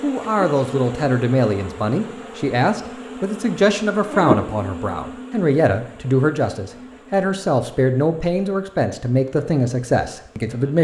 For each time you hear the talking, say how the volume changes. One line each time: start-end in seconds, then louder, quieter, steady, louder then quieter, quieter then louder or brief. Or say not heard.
0.0-10.7 steady.